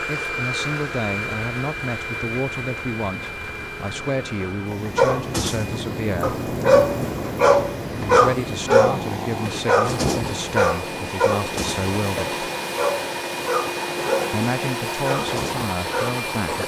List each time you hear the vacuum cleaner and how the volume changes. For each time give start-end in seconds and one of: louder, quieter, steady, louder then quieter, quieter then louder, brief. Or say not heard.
0.0-16.6 quieter then louder.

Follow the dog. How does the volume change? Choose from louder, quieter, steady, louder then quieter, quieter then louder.
quieter.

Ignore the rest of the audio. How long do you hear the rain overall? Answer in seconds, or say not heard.
10 s.